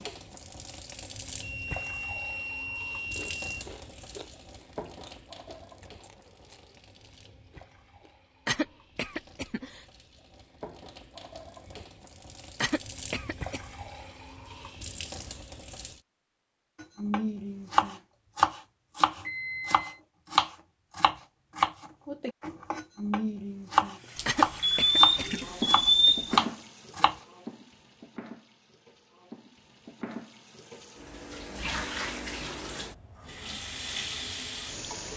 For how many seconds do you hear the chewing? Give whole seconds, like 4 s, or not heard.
5 s.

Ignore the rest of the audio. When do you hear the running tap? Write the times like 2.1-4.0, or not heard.
0.0-16.0, 23.9-35.1.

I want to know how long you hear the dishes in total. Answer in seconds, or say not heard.
not heard.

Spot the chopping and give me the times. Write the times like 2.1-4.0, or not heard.
16.8-27.1.